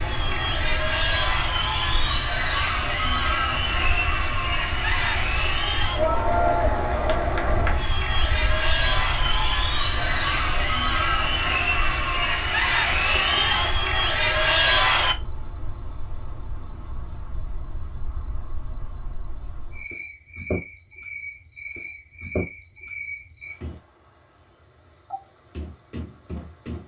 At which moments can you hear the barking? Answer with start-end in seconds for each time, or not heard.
not heard.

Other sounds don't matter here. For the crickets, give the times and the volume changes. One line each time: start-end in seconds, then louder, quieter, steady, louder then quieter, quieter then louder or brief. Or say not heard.
0.0-26.8 quieter.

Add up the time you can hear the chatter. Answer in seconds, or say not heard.
15 s.